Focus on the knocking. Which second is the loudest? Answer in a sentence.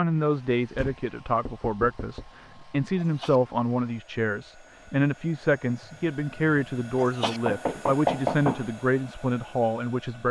The loudest moment of the knocking is at 8 seconds.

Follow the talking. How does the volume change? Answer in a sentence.
The volume of the talking stays about the same.